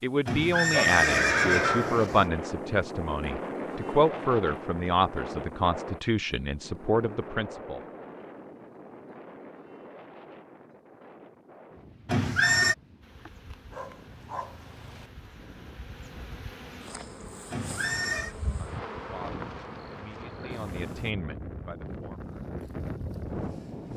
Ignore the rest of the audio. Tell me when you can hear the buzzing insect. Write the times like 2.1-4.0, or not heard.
13.0-21.1.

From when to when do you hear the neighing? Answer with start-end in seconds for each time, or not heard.
0.2-2.3, 12.1-12.8, 17.5-18.4.